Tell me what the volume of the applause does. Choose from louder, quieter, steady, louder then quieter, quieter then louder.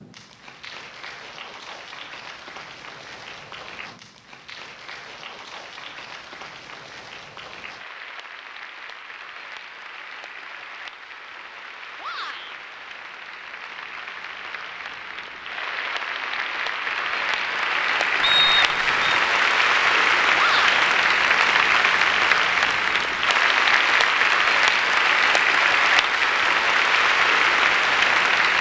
louder.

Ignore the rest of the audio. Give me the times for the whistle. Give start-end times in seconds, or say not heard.
18.2-19.2.